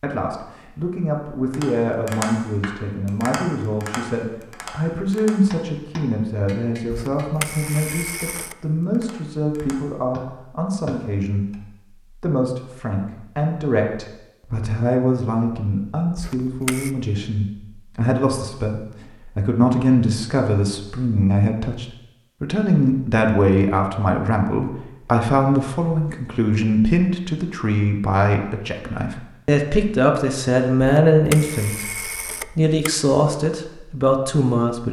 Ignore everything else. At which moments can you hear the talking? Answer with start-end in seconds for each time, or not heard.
0.0-34.8.